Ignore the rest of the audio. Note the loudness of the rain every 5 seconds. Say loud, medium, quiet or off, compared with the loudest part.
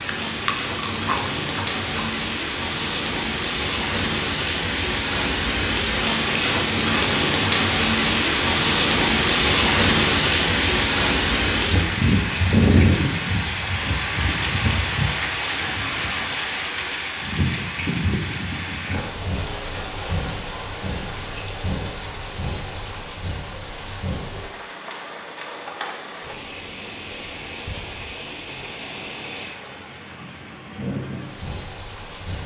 medium, loud, loud, medium, quiet, quiet, quiet.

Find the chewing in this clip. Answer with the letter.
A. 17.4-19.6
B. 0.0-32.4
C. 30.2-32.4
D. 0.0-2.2
D.